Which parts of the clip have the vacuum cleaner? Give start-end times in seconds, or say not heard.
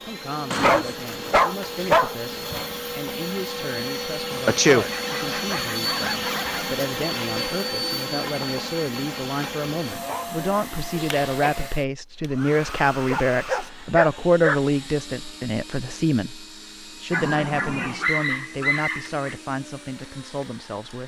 0.0-21.0.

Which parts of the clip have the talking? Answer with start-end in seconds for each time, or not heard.
0.0-21.0.